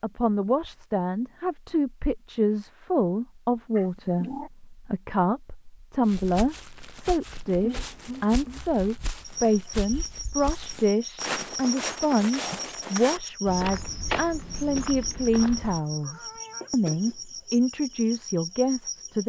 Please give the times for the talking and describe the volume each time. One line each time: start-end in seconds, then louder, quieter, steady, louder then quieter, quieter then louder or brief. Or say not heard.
0.0-19.2 steady.